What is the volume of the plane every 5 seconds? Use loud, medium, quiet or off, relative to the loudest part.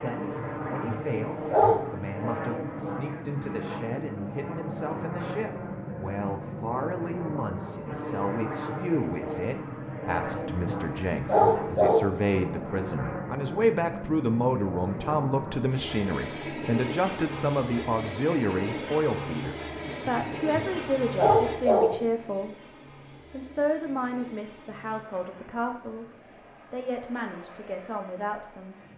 loud, loud, loud, loud, medium, quiet.